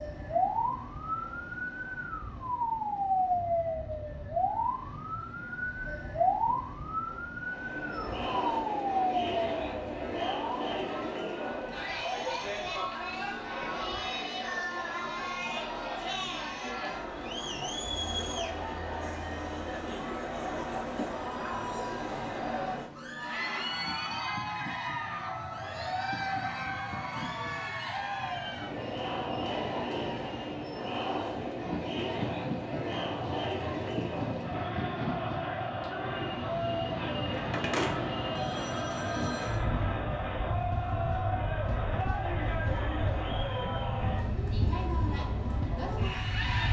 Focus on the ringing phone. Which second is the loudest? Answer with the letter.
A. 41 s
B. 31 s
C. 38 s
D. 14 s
C.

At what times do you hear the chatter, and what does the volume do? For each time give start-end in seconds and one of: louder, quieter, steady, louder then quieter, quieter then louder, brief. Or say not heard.
7.4-46.6 steady.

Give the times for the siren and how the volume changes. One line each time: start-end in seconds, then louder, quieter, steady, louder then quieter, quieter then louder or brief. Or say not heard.
0.0-14.1 quieter.